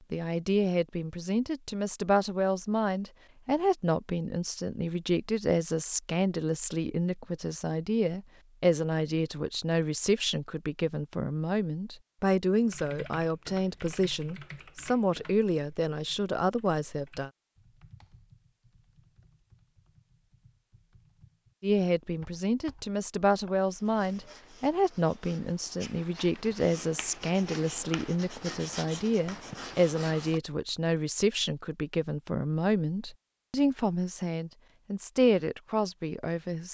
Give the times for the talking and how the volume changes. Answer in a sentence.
You can hear the talking from 0.1 to 17.3 s, at a steady volume; and from 21.6 to 36.6 s, at a steady volume.